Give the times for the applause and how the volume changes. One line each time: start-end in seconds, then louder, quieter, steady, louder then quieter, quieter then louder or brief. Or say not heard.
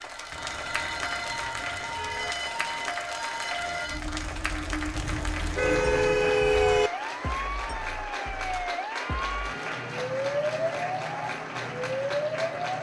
0.0-12.7 steady.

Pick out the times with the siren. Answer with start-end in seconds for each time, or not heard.
0.0-12.7.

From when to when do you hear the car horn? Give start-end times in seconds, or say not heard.
0.3-2.4, 5.0-6.9, 8.9-9.8.